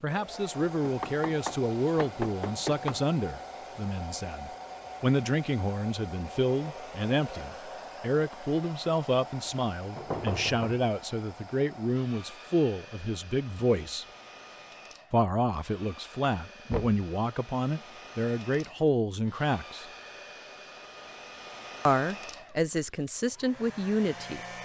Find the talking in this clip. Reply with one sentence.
The talking can be heard from 0.0 to 14.1 s, from 15.1 to 19.9 s and from 21.9 to 24.4 s.